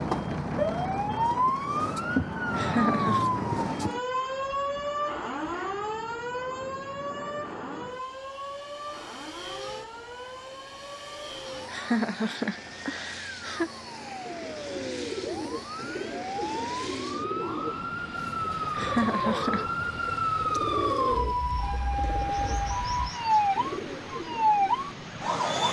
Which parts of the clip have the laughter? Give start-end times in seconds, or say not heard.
2.5-3.3, 11.7-13.7, 18.7-19.6.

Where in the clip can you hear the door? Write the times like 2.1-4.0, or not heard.
not heard.